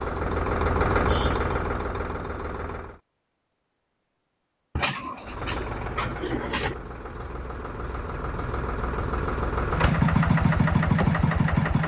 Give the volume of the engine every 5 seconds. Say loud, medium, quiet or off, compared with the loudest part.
medium, medium, loud.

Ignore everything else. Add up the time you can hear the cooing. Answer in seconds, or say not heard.
2 s.